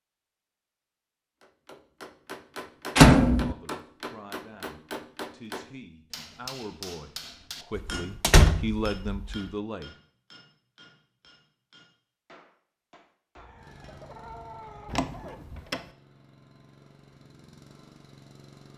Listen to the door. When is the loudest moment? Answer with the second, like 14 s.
3 s.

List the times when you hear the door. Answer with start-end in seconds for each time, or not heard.
3.0-3.5, 7.8-9.3, 14.8-15.8.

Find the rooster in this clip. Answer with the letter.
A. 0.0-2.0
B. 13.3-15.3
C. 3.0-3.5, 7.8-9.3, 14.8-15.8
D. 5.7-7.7
B.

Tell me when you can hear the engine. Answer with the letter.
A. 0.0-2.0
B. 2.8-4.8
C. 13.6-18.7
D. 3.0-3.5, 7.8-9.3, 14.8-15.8
C.